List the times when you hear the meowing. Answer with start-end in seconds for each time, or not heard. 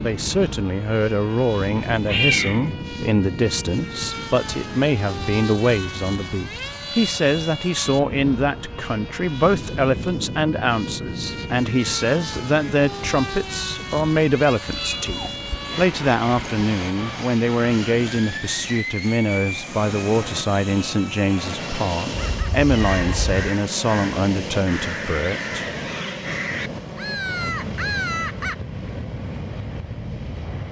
1.8-2.6, 14.7-16.6, 22.1-23.4.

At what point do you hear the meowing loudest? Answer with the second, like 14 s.
2 s.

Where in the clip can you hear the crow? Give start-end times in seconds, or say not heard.
22.2-28.6.